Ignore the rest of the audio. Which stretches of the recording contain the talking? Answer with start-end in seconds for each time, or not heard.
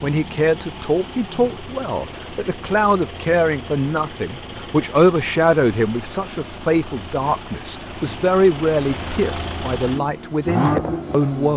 0.0-11.5.